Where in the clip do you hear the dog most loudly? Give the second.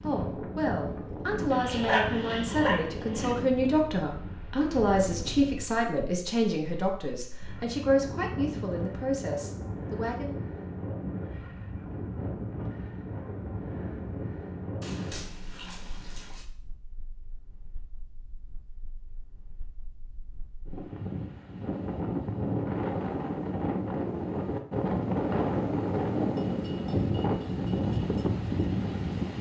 2 s.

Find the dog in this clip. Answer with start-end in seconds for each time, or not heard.
1.5-3.4, 14.8-16.4.